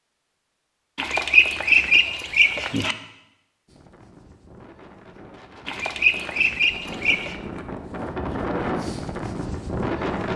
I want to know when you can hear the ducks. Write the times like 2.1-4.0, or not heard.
0.9-3.0, 5.7-7.3.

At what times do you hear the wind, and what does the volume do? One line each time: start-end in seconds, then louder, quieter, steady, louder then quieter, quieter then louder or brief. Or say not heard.
3.6-10.3 louder.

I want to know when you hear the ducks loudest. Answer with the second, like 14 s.
2 s.